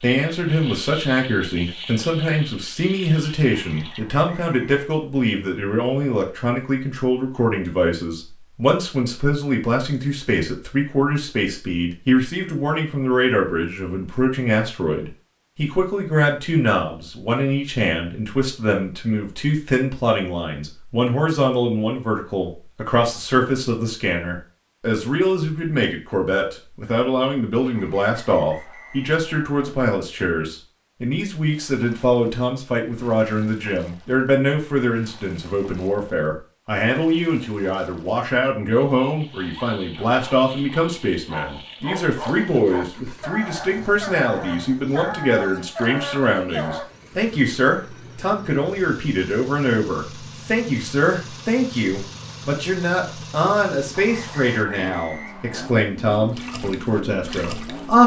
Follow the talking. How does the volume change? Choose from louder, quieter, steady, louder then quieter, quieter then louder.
steady.